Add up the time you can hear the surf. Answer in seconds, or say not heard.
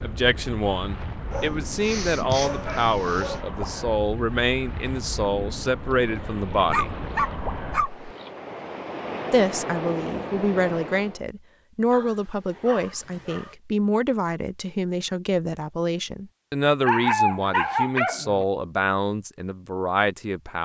11 s.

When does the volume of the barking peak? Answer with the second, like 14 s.
17 s.